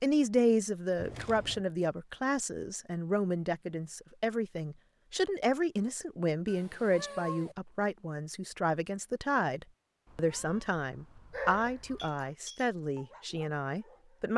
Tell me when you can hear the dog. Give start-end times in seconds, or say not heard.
11.3-14.2.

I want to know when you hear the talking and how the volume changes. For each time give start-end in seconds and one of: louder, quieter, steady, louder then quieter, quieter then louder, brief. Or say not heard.
0.0-14.3 steady.